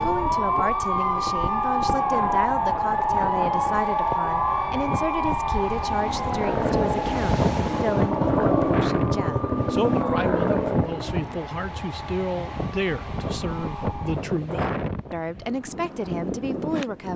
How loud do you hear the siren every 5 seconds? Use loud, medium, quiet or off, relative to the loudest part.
loud, medium, quiet, off.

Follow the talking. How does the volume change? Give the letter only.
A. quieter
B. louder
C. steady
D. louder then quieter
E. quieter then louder
C.